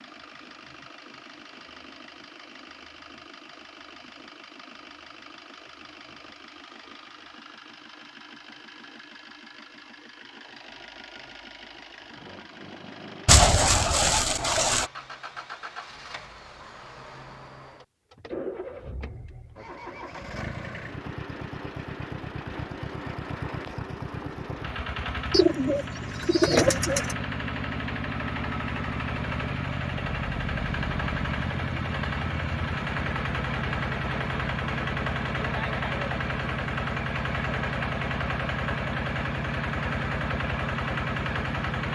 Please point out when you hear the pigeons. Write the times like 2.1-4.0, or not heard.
13.2-14.8, 25.3-27.1.